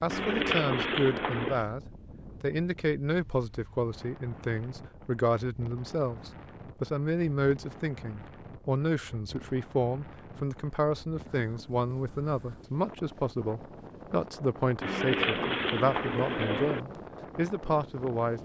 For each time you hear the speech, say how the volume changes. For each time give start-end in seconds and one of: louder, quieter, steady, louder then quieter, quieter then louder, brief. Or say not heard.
0.0-1.8 brief
2.4-18.4 steady.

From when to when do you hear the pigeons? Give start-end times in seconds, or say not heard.
0.1-1.6, 14.8-16.8.